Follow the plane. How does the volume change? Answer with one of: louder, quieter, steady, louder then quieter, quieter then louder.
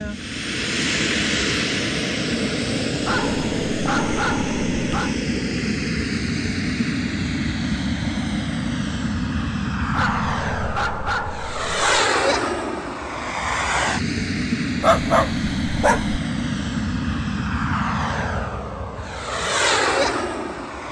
steady.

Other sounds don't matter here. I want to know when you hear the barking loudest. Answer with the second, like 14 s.
15 s.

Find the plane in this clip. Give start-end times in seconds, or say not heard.
0.0-20.8.